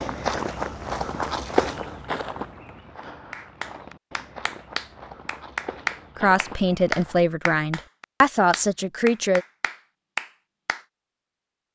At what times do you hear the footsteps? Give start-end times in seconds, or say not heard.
0.0-7.2.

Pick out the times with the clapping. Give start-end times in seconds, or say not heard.
3.3-10.8.